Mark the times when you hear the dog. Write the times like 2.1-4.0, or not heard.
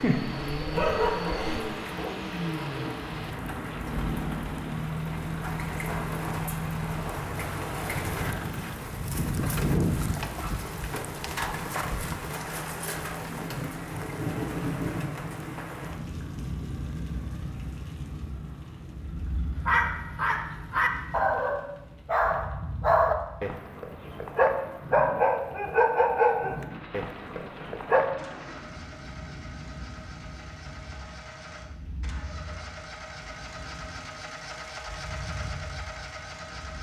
0.0-1.6, 19.6-28.1.